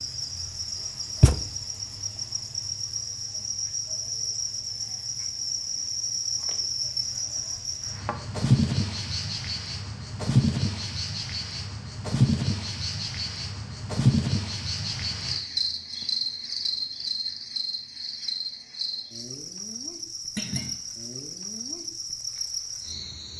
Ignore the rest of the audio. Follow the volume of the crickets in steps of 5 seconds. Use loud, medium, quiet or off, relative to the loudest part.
medium, loud, loud, medium, medium.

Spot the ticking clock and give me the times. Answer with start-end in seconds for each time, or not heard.
not heard.